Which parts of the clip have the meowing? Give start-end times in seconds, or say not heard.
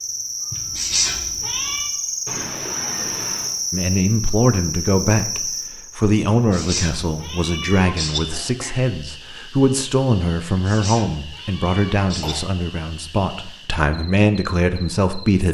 0.5-1.9, 6.3-8.2, 10.4-12.3.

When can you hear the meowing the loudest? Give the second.
1 s.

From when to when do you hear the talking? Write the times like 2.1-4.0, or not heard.
3.7-15.5.